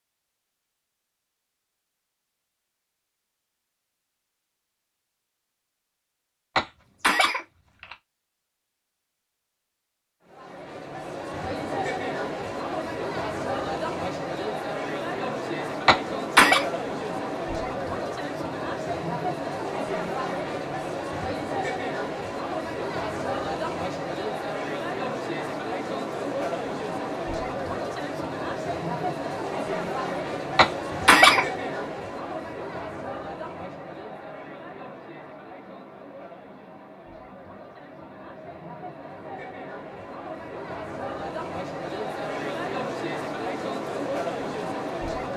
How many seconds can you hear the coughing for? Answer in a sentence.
The coughing can be heard for 3 seconds in total.